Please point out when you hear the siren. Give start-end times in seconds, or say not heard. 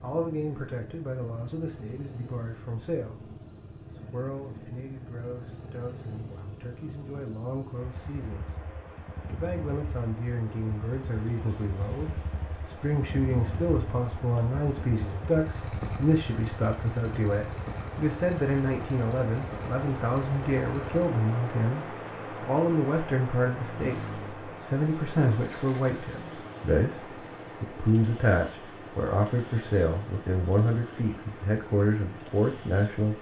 not heard.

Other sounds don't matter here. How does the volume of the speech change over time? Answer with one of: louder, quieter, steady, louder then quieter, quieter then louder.
louder.